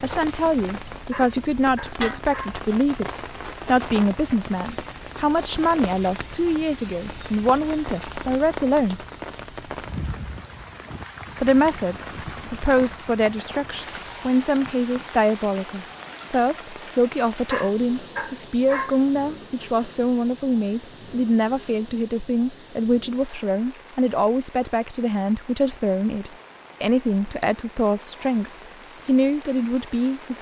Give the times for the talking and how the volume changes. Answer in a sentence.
You can hear the talking from 0.0 to 9.0 s, at a steady volume; and from 11.4 to 30.3 s, at a steady volume.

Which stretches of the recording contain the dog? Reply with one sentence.
The dog can be heard from 1.1 to 2.6 s and from 17.5 to 19.0 s.